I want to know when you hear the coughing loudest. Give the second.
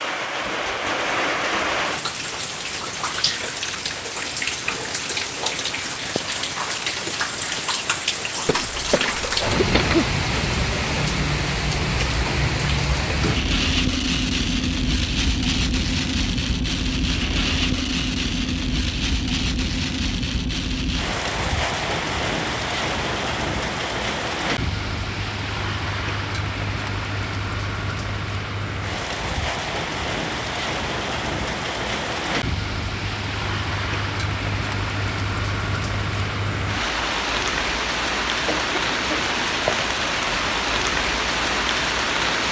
10 s.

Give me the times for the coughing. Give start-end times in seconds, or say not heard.
8.4-10.1, 38.5-39.4.